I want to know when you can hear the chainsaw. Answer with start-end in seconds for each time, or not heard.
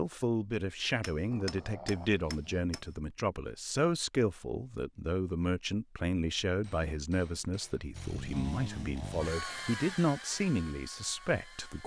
7.9-11.8.